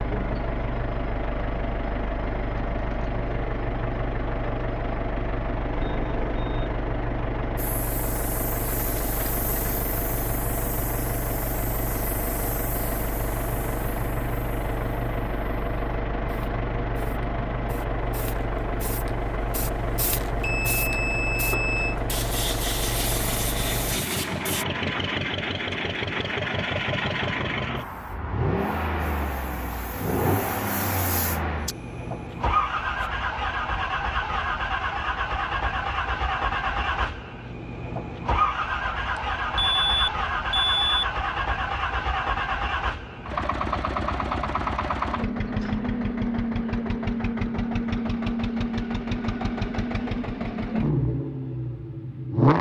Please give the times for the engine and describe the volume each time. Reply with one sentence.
You can hear the engine from 0.0 to 52.5 s, at a steady volume.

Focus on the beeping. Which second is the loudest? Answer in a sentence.
The loudest moment of the beeping is at 41 seconds.